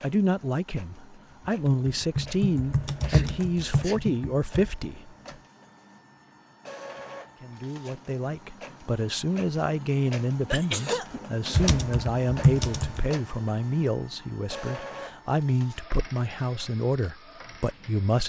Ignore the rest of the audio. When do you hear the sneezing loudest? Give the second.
11 s.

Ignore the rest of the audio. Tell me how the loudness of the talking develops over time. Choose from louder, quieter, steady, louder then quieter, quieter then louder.
steady.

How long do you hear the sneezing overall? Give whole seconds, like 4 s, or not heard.
2 s.